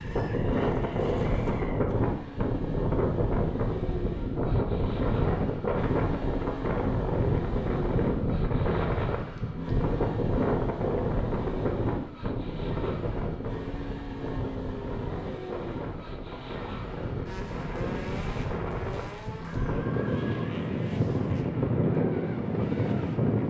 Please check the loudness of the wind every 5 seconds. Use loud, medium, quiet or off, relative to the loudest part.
loud, loud, loud, medium, loud.